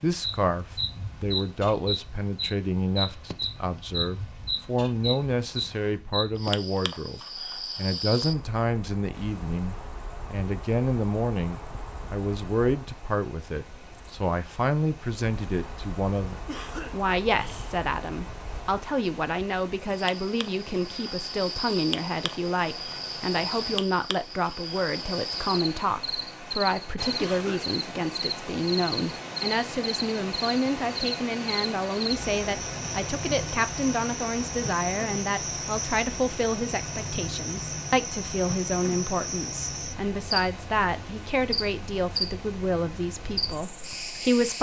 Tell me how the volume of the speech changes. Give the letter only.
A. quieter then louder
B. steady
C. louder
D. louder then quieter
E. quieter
B.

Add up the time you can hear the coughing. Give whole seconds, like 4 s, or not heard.
2 s.